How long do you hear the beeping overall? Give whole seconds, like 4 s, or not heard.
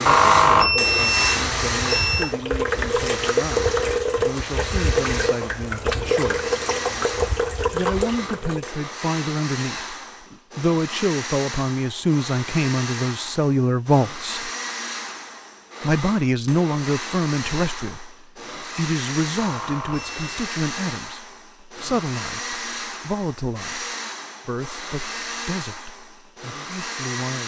3 s.